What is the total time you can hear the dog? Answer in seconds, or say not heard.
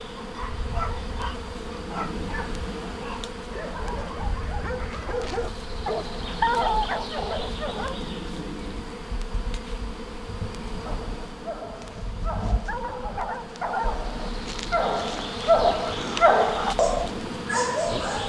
15 s.